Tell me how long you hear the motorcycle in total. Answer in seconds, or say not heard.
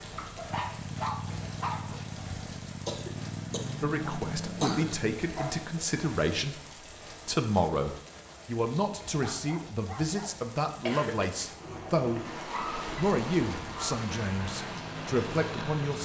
7 s.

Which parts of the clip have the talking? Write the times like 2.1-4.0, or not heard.
3.8-6.6, 7.2-12.2, 12.9-16.0.